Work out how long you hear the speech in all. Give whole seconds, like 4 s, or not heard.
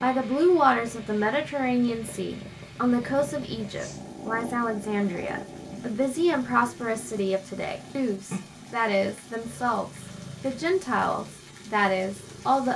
13 s.